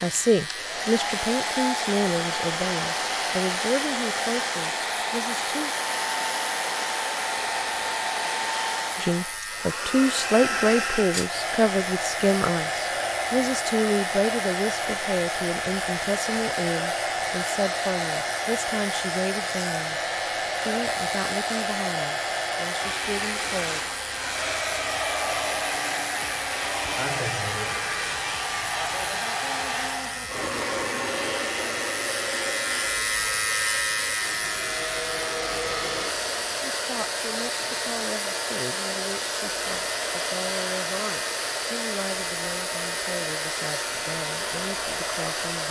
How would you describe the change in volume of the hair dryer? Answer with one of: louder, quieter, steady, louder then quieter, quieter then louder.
steady.